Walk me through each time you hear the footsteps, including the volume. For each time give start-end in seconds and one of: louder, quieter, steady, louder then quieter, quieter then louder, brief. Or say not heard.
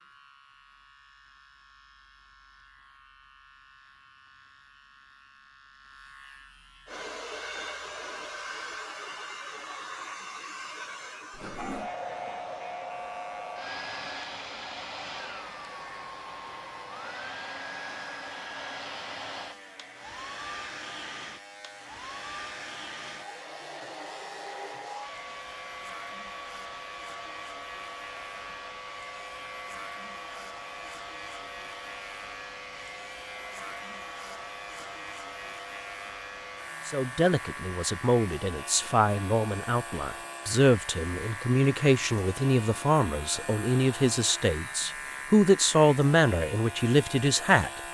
not heard.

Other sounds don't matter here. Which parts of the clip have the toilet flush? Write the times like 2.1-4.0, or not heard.
11.3-11.9.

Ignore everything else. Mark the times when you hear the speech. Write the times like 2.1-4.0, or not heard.
36.9-47.7.